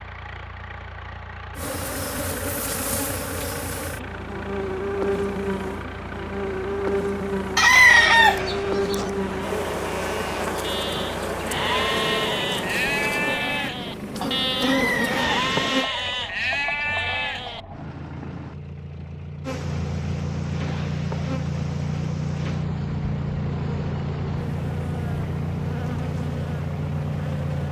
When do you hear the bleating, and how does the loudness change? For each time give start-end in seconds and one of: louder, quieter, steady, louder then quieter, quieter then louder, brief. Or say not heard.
7.7-17.6 louder.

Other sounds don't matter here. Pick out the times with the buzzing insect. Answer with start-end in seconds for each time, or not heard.
1.6-15.9, 19.4-27.6.